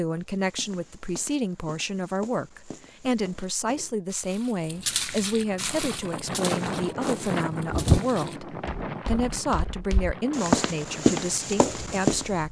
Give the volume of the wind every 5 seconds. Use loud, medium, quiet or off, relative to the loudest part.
off, loud, quiet.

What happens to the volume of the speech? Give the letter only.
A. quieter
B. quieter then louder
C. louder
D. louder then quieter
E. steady
E.